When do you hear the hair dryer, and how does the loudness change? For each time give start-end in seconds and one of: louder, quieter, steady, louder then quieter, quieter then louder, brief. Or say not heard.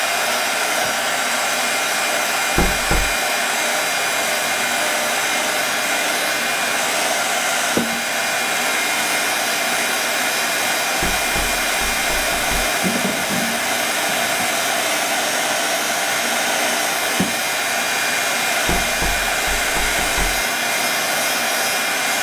0.0-22.1 steady.